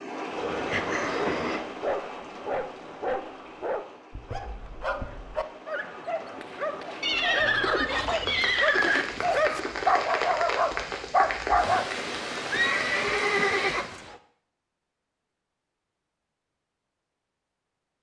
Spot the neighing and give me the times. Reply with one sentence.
You can hear the neighing from 0.5 to 1.6 s, from 7.0 to 9.1 s and from 12.5 to 14.2 s.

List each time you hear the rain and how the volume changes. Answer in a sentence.
The rain can be heard from 0.0 to 13.9 s, getting quieter then louder.